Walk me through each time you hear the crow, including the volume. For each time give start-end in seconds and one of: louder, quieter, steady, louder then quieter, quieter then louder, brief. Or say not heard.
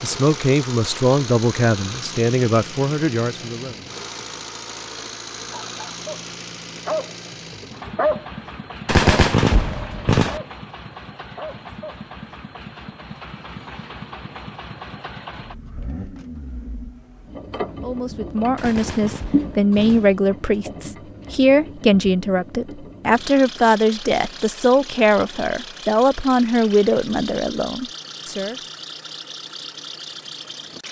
not heard.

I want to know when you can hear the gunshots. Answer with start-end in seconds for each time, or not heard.
8.8-10.4, 18.6-20.1.